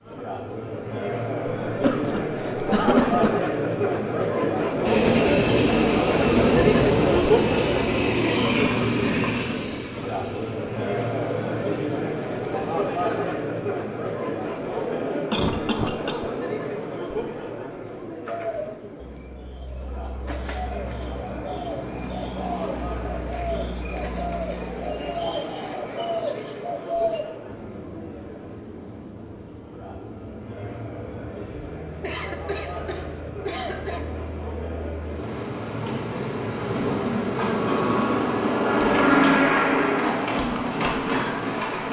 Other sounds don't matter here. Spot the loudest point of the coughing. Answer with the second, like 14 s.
3 s.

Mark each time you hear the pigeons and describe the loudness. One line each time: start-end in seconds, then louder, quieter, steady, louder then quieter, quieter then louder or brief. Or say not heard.
18.2-27.2 louder.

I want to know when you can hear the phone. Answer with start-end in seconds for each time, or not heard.
not heard.